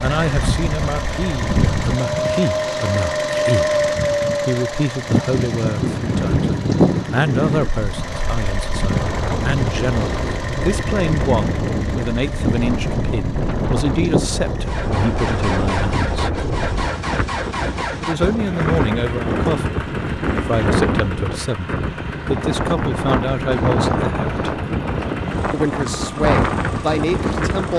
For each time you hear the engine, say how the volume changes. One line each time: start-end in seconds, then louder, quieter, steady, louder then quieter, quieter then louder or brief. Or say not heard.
0.0-27.7 quieter.